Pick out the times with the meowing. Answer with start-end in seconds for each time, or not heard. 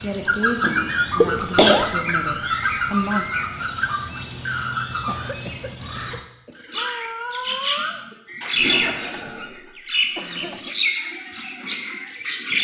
6.8-8.1.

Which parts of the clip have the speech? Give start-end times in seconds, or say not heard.
0.0-3.4.